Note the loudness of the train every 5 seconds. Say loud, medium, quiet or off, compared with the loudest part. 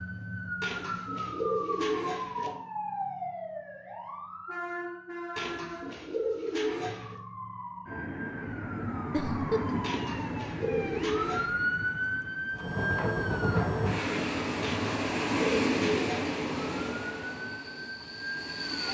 off, off, loud, loud.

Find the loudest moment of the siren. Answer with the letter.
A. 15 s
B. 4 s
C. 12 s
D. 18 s
C.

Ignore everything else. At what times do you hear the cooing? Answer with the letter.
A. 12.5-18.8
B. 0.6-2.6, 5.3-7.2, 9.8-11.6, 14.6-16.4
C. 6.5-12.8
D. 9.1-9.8
B.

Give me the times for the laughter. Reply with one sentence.
You can hear the laughter from 9.1 to 9.8 s.